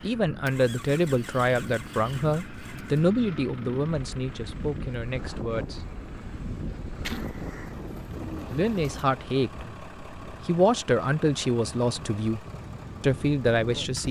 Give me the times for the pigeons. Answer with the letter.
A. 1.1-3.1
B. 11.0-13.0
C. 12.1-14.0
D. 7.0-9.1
D.